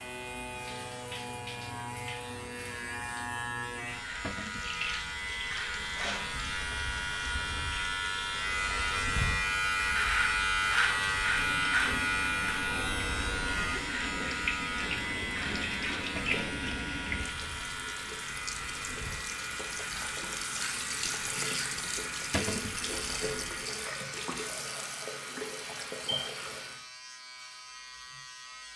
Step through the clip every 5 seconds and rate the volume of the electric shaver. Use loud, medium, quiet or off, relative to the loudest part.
medium, loud, loud, medium, quiet, quiet.